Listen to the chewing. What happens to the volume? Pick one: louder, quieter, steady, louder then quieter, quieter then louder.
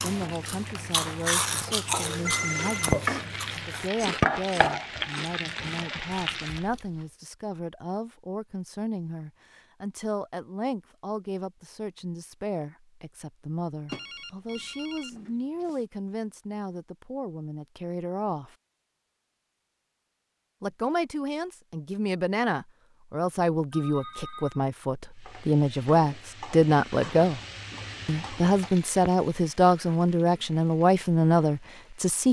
quieter.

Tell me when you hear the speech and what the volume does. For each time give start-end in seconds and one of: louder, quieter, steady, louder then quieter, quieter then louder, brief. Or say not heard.
0.0-18.6 steady
20.6-27.4 louder
28.1-32.2 steady.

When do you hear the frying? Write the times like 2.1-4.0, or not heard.
0.1-6.7, 25.1-32.2.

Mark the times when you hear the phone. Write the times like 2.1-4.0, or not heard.
2.2-3.0, 13.8-15.7, 23.7-24.6.